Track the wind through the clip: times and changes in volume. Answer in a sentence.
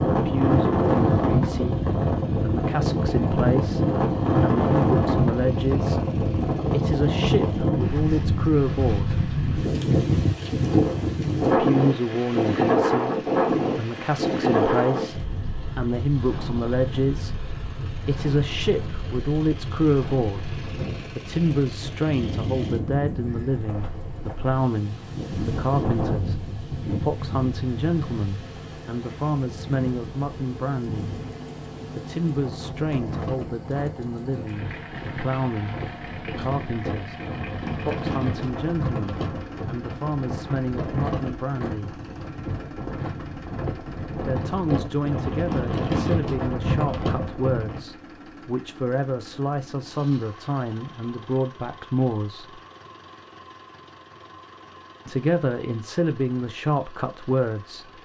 The wind can be heard from 0.0 to 47.9 s, getting quieter then louder.